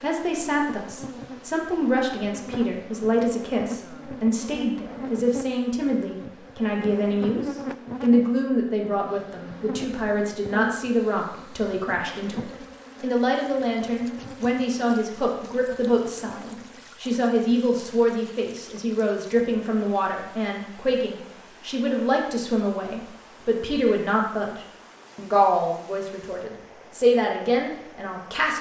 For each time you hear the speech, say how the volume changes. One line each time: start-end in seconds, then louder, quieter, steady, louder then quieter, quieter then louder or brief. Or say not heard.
0.0-28.5 steady.